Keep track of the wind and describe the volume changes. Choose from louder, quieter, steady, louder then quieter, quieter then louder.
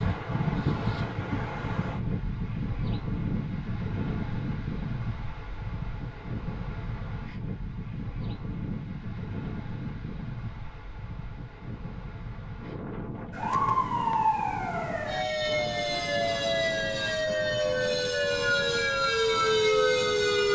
quieter.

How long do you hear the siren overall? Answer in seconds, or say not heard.
7 s.